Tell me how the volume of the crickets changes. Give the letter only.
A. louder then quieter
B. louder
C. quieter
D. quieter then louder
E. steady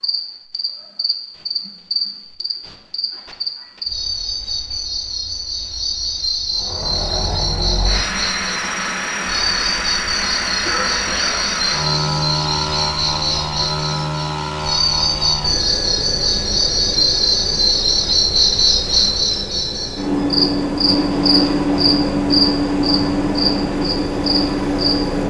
B.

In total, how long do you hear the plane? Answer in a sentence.
The plane can be heard for 19 seconds in total.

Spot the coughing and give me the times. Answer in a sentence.
You can hear the coughing from 10.7 to 11.4 s.